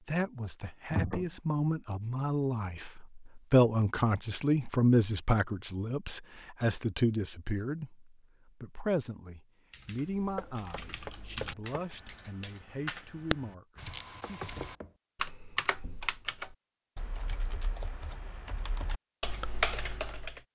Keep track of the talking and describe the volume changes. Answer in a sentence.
The loudness of the talking goes up, then down.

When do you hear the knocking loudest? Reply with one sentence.
The volume of the knocking peaks at 1 second.